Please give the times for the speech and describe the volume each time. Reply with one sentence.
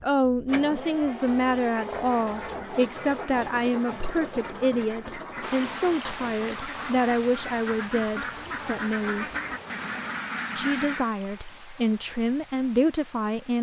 The speech can be heard from 0.0 to 9.2 s, at a steady volume; and briefly from 10.6 to 13.5 s.